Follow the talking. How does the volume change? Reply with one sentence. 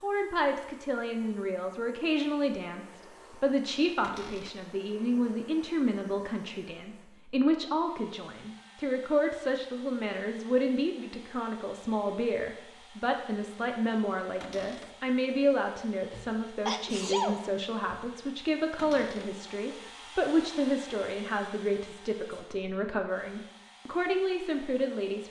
The volume of the talking stays about the same.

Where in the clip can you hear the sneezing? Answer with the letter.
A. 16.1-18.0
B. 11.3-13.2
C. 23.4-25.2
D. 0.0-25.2
A.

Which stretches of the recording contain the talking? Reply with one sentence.
You can hear the talking from 0.0 to 25.2 s.